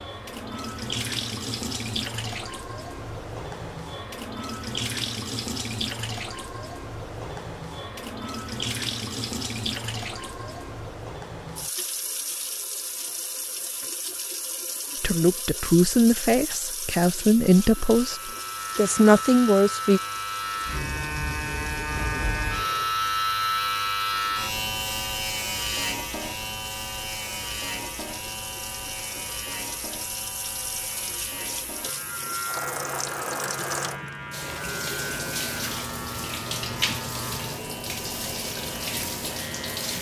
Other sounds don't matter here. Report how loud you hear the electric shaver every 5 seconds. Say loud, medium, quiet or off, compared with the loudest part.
off, off, off, medium, loud, medium, medium, medium.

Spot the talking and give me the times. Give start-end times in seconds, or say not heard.
15.0-20.0.